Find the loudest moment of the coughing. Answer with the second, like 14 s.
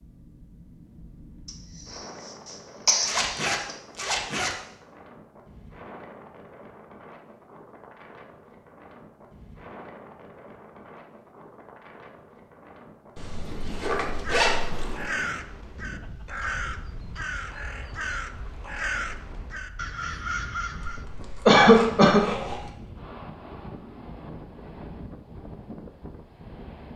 22 s.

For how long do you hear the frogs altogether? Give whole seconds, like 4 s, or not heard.
not heard.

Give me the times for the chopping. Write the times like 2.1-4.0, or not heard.
not heard.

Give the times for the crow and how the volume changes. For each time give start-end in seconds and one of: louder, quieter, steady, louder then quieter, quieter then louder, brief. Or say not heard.
14.1-21.1 steady.